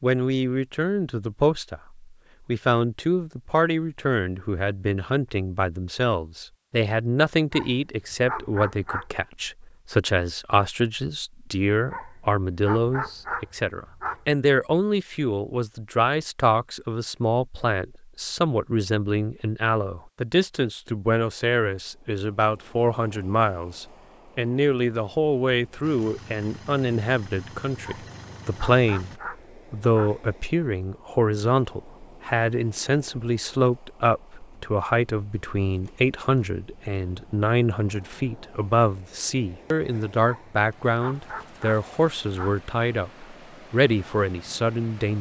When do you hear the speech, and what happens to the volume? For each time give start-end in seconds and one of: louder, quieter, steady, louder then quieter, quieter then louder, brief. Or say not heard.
0.0-45.1 steady.